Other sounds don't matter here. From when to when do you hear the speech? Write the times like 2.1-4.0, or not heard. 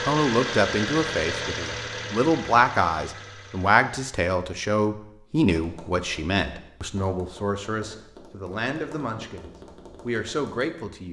0.0-11.0.